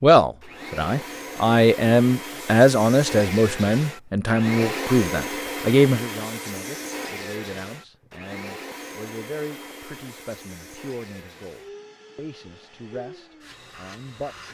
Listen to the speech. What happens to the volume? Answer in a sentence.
The volume of the speech goes down.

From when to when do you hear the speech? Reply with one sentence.
You can hear the speech from 0.0 to 14.4 s.